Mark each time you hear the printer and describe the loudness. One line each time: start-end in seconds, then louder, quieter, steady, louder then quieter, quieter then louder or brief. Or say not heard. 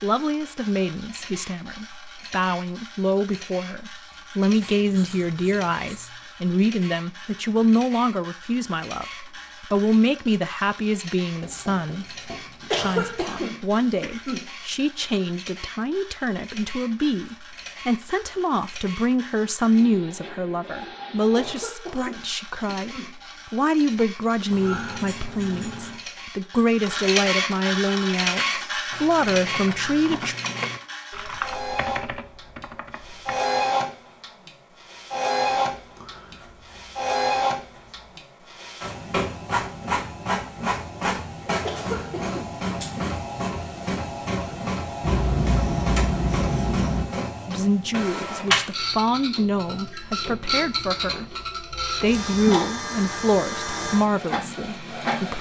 0.0-55.3 louder.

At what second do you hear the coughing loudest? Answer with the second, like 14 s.
13 s.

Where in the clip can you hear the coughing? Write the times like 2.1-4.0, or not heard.
12.7-14.5, 21.4-23.1, 41.6-42.5.